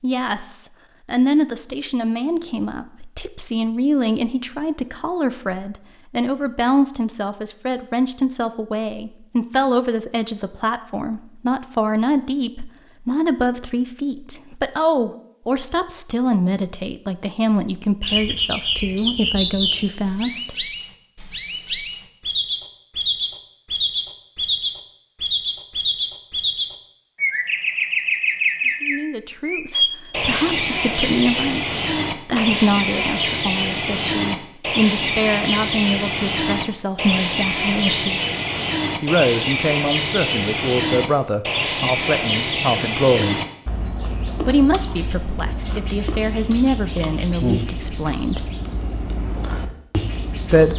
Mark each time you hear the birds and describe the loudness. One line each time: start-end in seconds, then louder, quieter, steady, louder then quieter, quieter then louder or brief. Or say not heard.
17.8-50.7 quieter.